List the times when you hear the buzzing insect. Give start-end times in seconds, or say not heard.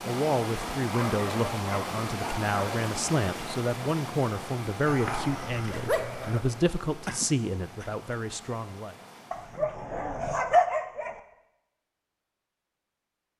not heard.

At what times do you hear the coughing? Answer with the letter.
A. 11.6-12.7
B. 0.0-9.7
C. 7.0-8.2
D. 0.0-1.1
C.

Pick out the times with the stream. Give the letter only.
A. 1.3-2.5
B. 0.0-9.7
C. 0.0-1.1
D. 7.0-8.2
B.